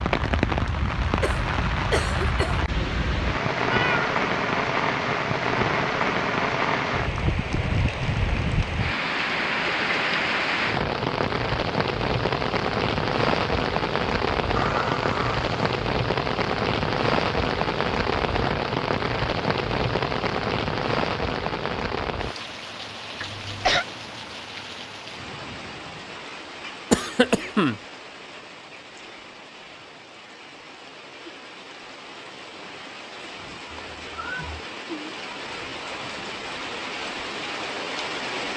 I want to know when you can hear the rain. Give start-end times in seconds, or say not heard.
0.0-38.5.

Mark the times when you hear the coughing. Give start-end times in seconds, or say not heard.
1.2-2.6, 23.2-23.9, 26.9-27.8.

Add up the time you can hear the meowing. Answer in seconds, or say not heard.
3 s.